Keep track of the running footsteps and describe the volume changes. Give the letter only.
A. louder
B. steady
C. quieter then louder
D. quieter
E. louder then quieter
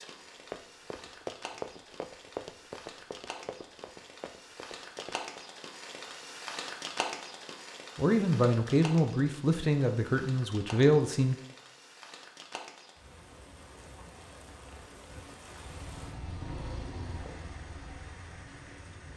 D.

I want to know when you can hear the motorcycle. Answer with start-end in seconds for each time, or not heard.
15.4-18.9.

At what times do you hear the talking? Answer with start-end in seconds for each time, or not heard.
8.0-11.3.